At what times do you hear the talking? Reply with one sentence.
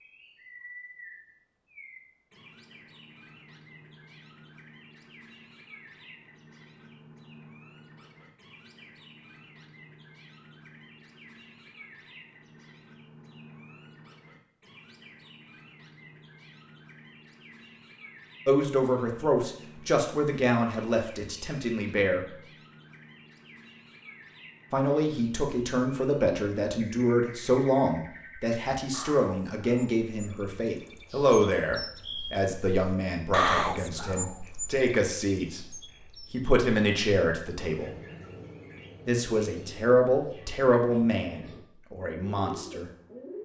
The talking can be heard from 18.4 to 22.2 s, from 24.7 to 35.6 s, from 36.3 to 37.9 s and from 39.0 to 42.9 s.